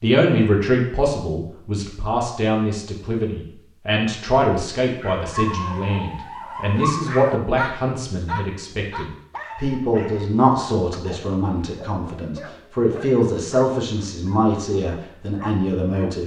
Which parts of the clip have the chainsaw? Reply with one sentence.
The chainsaw can't be heard in this clip.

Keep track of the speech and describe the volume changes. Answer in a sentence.
The loudness of the speech stays about the same.